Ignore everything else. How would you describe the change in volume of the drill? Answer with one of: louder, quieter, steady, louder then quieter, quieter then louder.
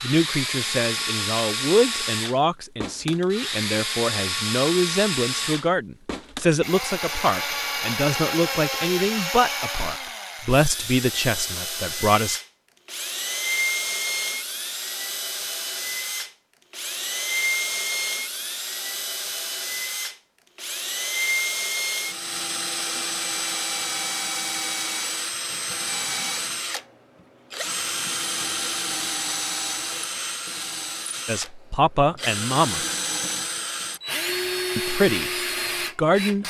steady.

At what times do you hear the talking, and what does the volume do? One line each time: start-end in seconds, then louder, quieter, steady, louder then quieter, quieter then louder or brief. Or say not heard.
0.0-12.4 steady
31.2-32.9 brief
34.8-35.3 brief
36.0-36.4 brief.